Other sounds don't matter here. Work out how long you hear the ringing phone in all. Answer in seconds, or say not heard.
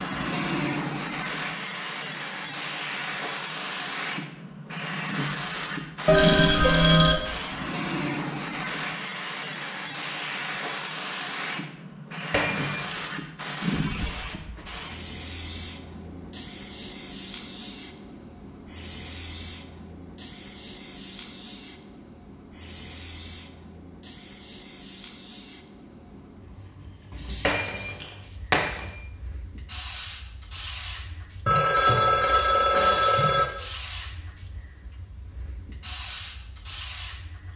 3 s.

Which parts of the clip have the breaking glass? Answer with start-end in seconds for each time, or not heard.
12.3-13.0, 27.4-28.9.